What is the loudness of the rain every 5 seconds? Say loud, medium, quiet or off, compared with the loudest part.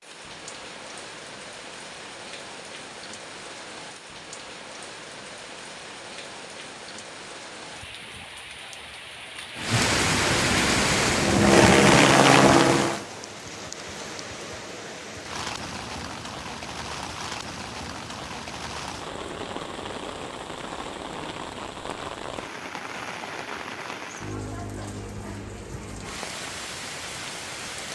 quiet, medium, loud, medium, medium, medium.